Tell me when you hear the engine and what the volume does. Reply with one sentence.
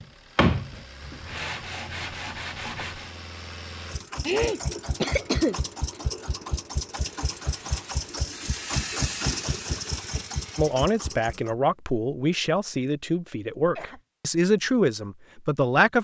The engine can be heard from 0.0 to 11.5 s, getting louder.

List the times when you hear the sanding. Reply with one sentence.
You can hear the sanding from 0.0 to 3.1 s.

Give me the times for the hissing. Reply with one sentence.
You can hear the hissing from 7.0 to 10.9 s.